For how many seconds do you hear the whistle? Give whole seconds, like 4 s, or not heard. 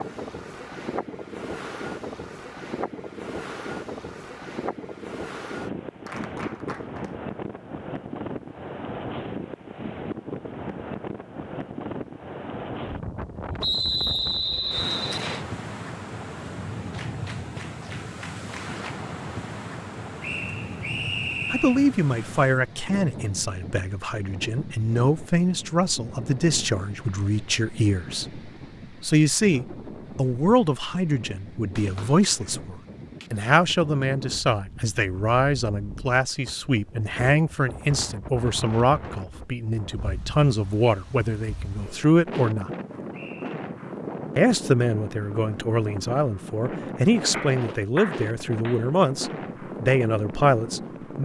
4 s.